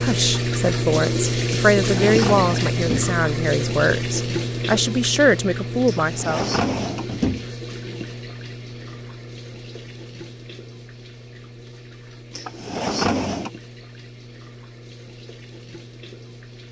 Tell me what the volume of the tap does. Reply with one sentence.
The loudness of the tap goes down.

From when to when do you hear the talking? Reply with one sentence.
The talking can be heard from 0.0 to 6.5 s.